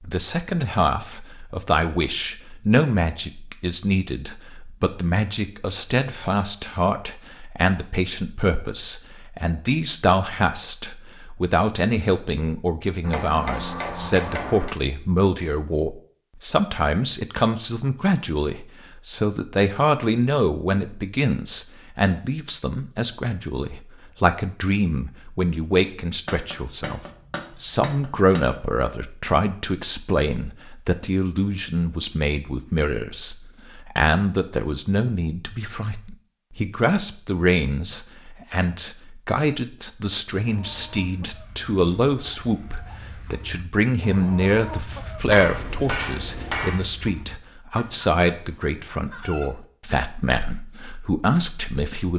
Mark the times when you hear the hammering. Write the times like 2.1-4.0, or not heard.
13.0-14.8, 26.2-28.6, 45.3-46.9.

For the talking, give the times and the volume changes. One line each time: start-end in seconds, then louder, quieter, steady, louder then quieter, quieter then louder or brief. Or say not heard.
0.0-52.1 steady.